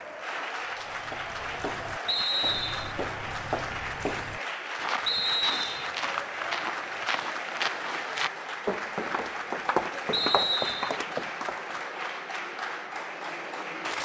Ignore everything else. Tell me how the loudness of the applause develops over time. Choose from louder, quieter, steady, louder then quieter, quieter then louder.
steady.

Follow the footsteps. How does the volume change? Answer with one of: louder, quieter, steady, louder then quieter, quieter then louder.
louder.